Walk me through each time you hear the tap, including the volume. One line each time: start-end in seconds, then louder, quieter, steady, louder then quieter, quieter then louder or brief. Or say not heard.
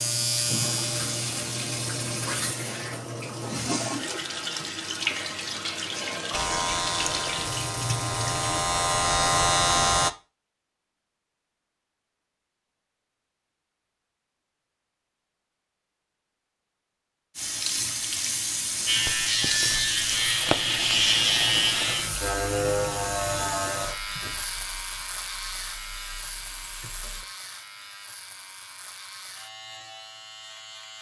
0.0-8.7 steady
17.4-27.2 quieter.